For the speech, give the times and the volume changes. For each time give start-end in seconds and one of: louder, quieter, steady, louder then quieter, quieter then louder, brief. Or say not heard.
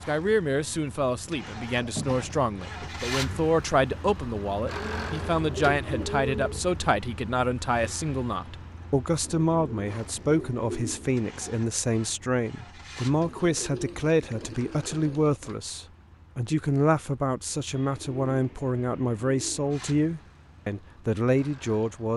0.1-22.1 steady.